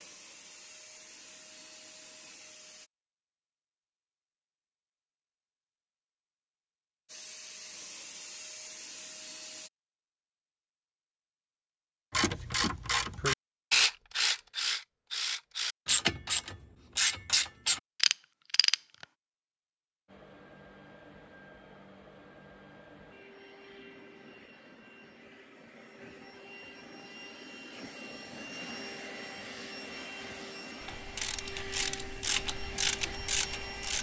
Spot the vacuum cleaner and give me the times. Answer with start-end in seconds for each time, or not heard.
0.0-2.9, 7.0-9.7, 20.1-33.9.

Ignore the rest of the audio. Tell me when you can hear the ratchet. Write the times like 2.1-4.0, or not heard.
12.1-19.1, 30.8-33.9.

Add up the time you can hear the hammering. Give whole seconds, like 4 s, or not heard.
not heard.